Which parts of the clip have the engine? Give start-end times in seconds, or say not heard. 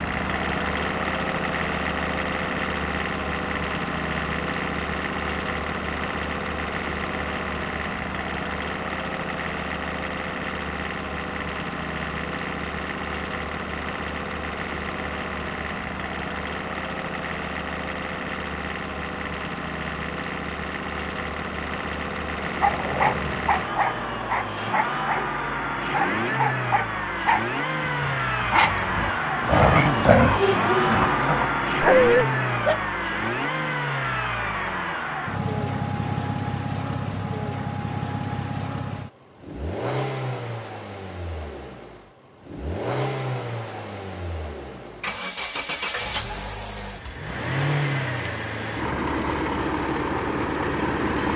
0.0-51.3.